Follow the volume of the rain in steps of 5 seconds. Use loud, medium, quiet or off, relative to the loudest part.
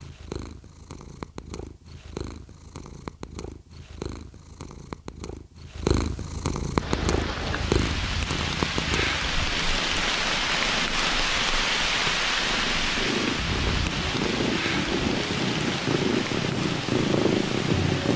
off, loud, loud, medium.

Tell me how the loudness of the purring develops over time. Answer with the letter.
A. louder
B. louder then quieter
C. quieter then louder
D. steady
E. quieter
A.